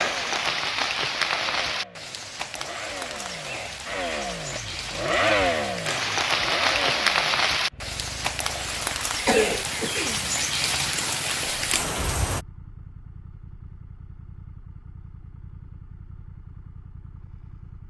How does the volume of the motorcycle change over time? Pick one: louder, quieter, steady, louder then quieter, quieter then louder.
louder then quieter.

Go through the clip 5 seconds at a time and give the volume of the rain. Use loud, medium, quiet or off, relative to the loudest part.
loud, loud, loud, off.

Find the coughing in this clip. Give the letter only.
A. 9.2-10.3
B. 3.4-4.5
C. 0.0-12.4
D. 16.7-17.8
A.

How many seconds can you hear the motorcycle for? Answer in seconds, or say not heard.
18 s.